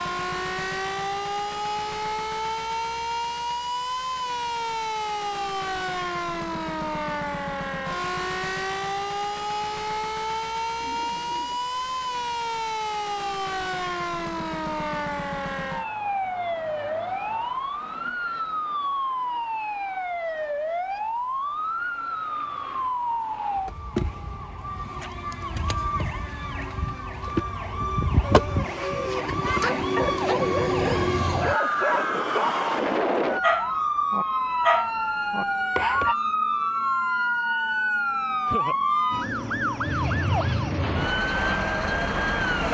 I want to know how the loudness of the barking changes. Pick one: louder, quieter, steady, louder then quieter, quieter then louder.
louder.